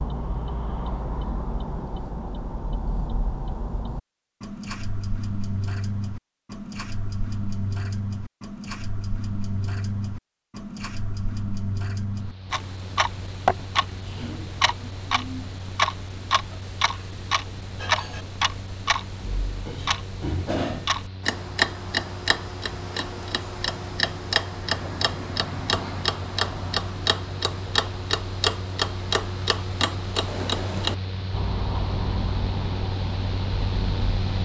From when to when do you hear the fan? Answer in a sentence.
You can hear the fan from 12.1 to 34.3 s.